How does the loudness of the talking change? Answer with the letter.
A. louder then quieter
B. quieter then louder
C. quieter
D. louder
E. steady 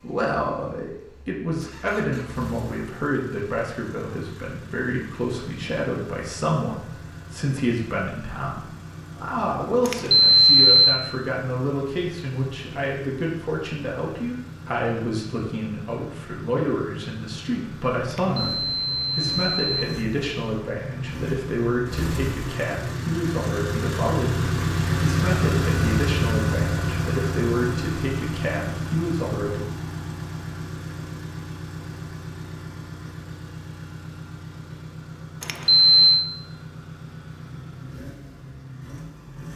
E.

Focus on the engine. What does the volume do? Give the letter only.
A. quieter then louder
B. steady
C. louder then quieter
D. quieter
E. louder
C.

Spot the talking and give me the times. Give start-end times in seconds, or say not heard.
0.0-29.6.